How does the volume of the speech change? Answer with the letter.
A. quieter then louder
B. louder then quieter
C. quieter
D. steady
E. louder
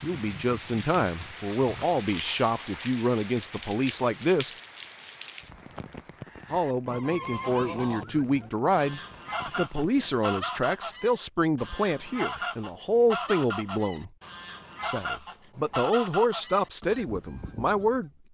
D.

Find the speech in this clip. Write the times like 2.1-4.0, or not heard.
0.0-4.5, 6.5-14.1, 14.8-18.1.